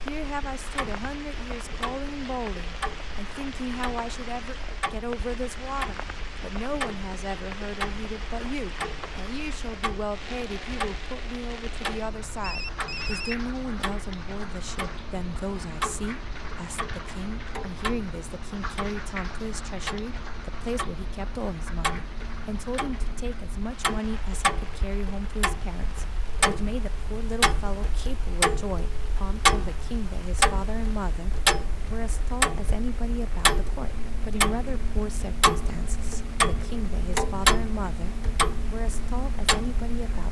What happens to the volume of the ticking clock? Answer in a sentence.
The loudness of the ticking clock goes up.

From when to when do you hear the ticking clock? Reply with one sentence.
You can hear the ticking clock from 0.0 to 40.2 s.